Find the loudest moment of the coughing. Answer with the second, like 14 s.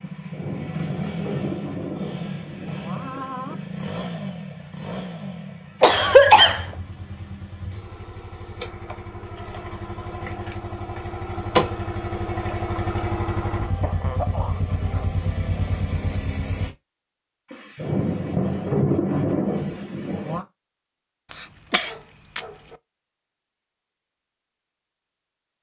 6 s.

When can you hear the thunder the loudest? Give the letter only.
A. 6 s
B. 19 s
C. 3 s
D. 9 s
B.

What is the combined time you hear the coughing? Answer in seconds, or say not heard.
3 s.